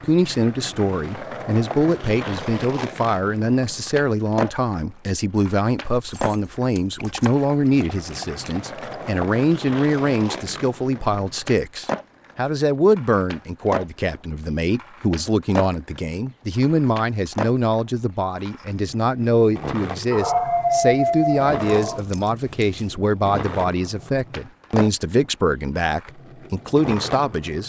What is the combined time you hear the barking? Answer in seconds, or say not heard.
4 s.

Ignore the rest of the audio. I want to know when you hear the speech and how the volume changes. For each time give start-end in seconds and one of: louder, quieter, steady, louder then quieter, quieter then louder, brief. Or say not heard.
0.0-27.6 steady.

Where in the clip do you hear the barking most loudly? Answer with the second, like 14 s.
21 s.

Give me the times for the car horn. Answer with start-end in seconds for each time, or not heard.
not heard.